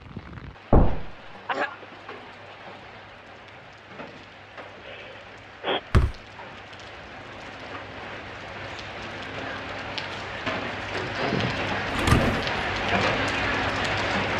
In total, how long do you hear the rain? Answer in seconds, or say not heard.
14 s.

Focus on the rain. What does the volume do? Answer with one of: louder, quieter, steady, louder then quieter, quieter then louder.
louder.